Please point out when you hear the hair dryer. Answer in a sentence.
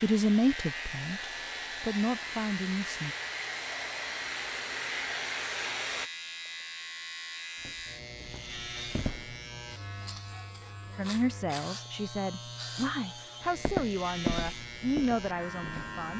You can hear the hair dryer from 0.0 to 6.1 s.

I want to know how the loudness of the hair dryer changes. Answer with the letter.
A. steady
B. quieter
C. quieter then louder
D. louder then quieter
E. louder
E.